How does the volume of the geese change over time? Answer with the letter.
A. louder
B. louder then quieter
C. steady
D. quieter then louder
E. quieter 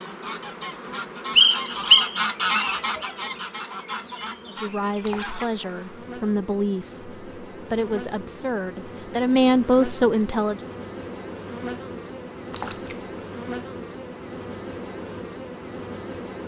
B.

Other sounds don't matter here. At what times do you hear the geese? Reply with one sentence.
The geese can be heard from 0.0 to 5.5 s.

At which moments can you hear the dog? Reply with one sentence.
You can't hear the dog here.